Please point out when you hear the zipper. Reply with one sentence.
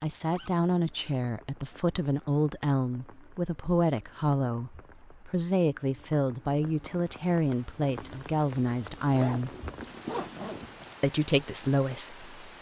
The zipper can be heard from 0.2 to 1.1 s and from 9.1 to 10.9 s.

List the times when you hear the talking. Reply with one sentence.
The talking can be heard from 0.0 to 9.5 s and from 11.0 to 12.5 s.